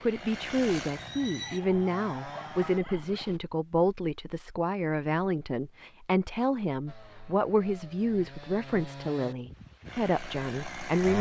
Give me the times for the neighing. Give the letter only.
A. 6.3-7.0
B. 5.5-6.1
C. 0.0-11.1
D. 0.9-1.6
D.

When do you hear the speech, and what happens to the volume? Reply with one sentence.
You can hear the speech from 0.0 to 11.1 s, at a steady volume.